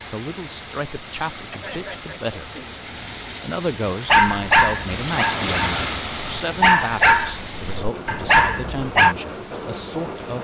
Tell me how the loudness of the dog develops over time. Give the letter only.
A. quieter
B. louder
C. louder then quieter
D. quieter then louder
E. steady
D.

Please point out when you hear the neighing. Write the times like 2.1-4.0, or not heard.
1.5-2.8.